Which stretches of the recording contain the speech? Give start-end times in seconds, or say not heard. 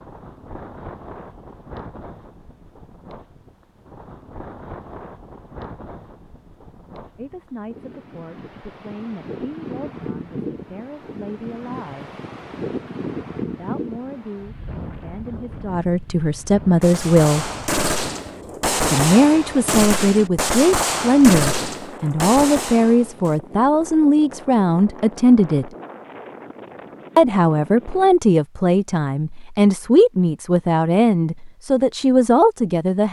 7.2-12.1, 13.4-17.5, 18.9-25.7, 27.1-33.0.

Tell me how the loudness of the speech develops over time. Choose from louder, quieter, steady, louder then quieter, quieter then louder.
louder.